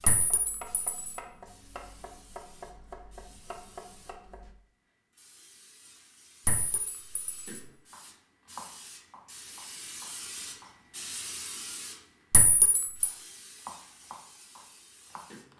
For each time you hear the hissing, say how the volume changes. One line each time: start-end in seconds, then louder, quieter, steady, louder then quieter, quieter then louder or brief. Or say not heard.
0.0-15.5 louder then quieter.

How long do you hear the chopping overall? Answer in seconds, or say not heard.
10 s.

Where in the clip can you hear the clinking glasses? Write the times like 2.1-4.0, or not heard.
0.1-1.1, 6.5-7.6, 12.3-13.1.